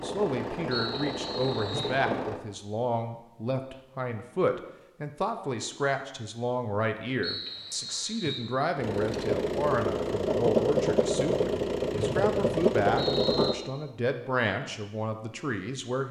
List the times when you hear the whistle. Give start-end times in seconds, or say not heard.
0.7-2.0, 7.2-8.5, 11.9-13.6.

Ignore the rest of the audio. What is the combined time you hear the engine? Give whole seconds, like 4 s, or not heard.
7 s.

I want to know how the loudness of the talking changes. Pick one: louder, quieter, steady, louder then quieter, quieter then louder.
steady.